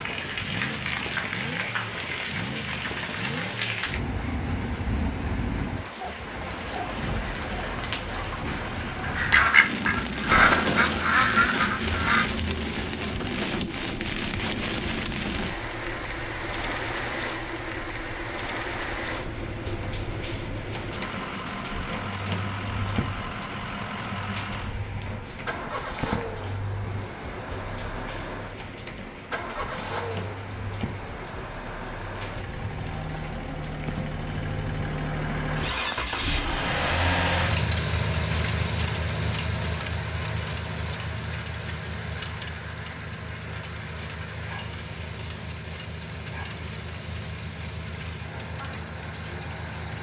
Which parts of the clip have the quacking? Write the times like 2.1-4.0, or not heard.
9.2-12.2.